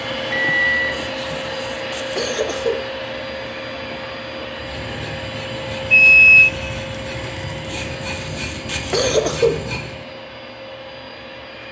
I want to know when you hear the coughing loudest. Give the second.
9 s.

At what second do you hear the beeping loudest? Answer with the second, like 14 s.
6 s.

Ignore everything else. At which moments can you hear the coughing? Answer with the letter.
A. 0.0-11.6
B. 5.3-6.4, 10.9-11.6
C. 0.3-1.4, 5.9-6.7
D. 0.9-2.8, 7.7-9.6
D.